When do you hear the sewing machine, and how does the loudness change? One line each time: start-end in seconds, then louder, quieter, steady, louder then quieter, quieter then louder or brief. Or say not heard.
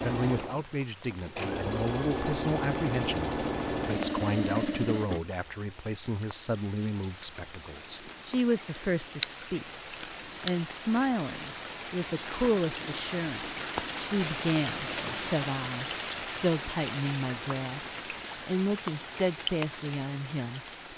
0.0-5.2 louder.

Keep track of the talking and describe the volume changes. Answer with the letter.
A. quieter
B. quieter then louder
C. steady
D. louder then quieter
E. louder
C.